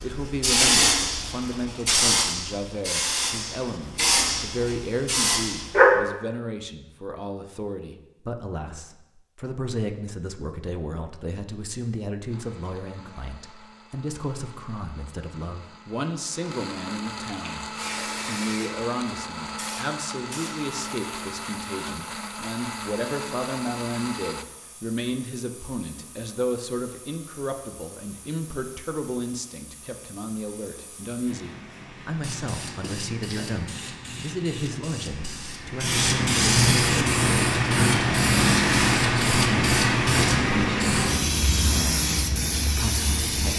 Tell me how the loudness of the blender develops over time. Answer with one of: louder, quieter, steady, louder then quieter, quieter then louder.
louder.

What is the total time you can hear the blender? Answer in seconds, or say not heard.
12 s.